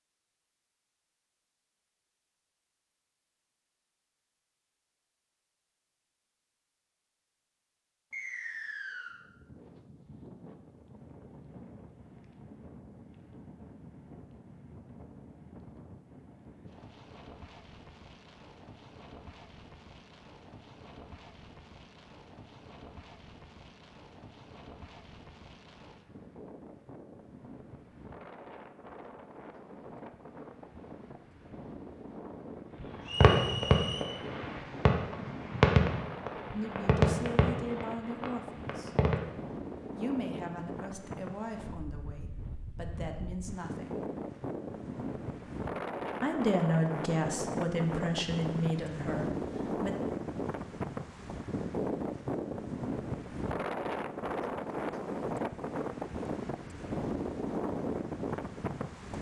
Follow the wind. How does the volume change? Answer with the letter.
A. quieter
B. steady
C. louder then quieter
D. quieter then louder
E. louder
E.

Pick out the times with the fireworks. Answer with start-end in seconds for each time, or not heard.
32.8-39.1.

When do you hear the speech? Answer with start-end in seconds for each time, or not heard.
36.5-38.9, 40.0-44.0, 46.2-50.0.